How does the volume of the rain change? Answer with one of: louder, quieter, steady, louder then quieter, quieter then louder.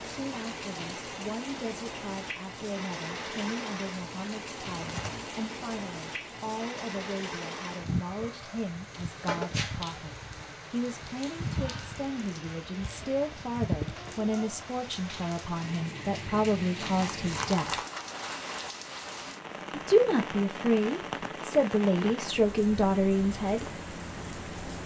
steady.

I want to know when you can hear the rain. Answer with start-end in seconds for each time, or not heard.
0.0-24.8.